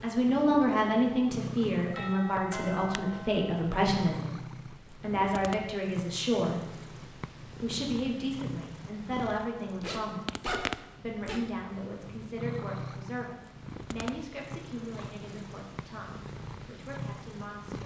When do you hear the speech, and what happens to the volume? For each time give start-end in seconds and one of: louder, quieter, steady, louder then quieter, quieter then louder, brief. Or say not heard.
0.0-17.8 quieter.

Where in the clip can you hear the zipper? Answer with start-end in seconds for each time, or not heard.
9.8-11.4.